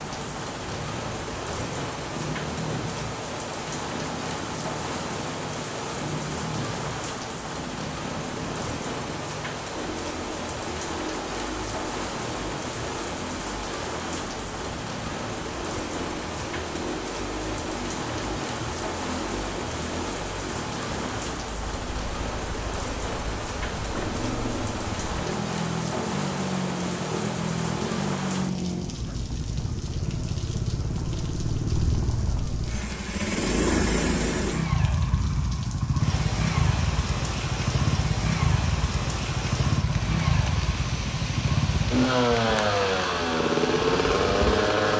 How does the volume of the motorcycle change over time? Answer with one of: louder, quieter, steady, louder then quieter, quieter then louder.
louder.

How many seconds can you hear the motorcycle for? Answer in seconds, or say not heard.
45 s.